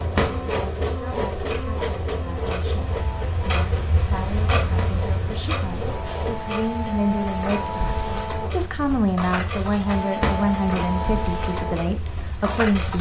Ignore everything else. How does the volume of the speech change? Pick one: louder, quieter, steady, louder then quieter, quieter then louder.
louder.